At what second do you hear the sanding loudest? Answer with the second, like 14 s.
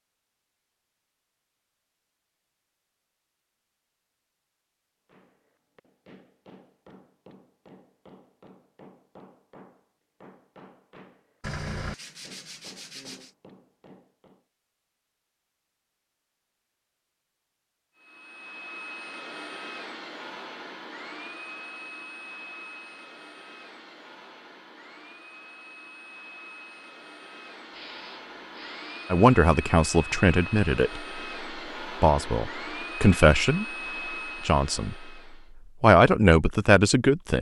12 s.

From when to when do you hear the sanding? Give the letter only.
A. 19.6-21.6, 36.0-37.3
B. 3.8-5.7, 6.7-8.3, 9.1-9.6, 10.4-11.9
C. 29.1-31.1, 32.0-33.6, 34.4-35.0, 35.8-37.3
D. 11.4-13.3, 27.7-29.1
D.